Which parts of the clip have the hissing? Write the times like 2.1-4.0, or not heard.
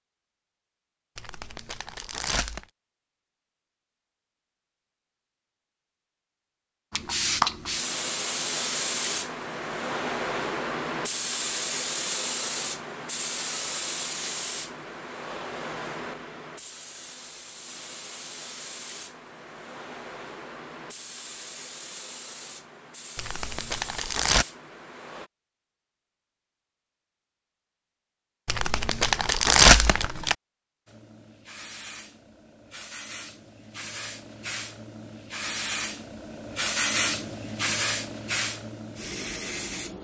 6.9-25.3, 30.9-39.9.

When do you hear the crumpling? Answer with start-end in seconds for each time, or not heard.
1.1-2.6, 23.1-24.4, 28.4-30.4.